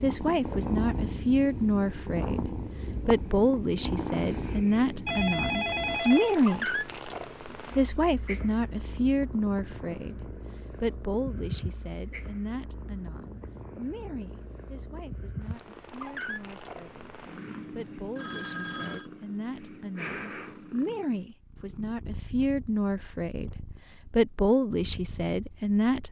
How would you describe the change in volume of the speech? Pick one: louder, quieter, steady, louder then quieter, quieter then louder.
quieter then louder.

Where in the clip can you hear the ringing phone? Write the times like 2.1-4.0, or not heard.
5.0-6.3, 18.1-19.1.